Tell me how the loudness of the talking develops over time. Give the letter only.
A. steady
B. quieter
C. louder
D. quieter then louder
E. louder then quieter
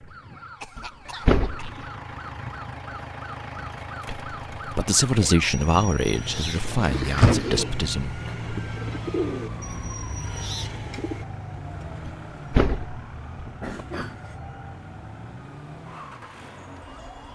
B.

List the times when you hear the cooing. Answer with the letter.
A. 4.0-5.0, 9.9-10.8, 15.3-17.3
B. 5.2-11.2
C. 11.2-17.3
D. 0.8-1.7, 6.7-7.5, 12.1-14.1
B.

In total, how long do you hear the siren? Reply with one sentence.
The siren can be heard for 17 seconds in total.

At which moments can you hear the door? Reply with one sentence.
The door can be heard from 0.8 to 1.7 s, from 6.7 to 7.5 s and from 12.1 to 14.1 s.